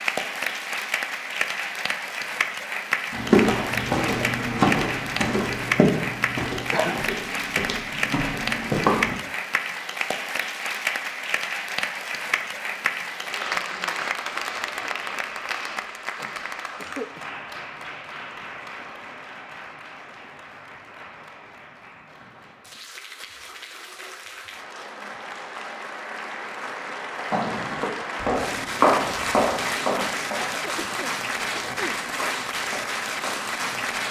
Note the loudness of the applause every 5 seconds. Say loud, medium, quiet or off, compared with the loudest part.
loud, loud, loud, medium, quiet, loud, loud.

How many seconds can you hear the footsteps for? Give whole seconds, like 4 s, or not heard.
12 s.